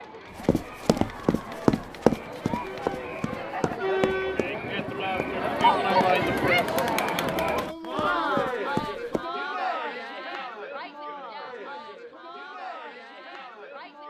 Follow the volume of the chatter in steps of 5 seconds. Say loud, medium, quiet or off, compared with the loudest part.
medium, loud, quiet.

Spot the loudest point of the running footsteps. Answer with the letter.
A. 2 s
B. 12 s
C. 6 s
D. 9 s
A.